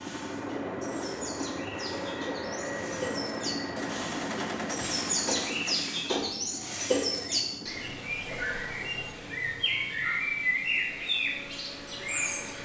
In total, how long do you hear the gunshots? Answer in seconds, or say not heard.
2 s.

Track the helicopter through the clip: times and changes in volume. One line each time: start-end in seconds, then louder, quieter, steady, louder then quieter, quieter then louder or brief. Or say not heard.
0.0-12.6 quieter.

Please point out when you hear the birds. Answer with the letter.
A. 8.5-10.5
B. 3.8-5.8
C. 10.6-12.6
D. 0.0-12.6
D.